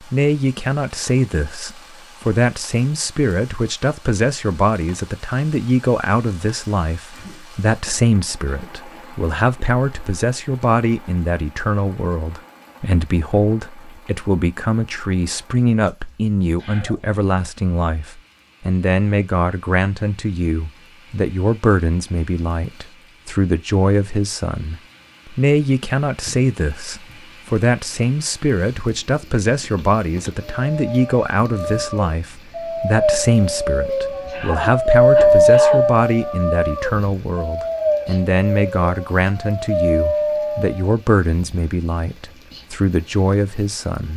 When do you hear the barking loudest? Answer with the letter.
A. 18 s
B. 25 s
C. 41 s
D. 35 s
D.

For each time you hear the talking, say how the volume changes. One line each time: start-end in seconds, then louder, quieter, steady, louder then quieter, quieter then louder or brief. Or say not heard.
0.0-44.1 steady.